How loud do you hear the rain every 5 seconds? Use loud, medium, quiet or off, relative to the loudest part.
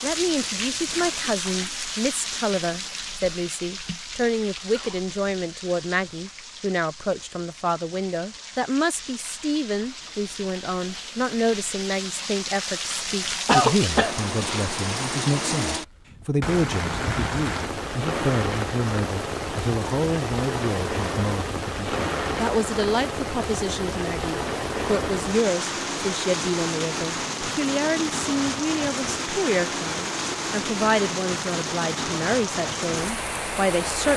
loud, quiet, loud, loud, loud, loud, loud.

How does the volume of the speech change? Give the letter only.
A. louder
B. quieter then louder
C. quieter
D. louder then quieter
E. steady
E.